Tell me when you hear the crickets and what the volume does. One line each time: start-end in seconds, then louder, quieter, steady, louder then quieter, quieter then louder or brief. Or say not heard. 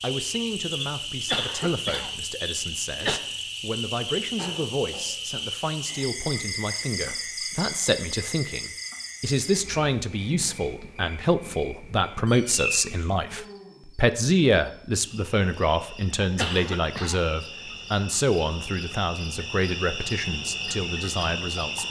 0.0-21.8 quieter then louder.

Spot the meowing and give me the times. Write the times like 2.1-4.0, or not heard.
4.3-6.0, 12.2-13.1.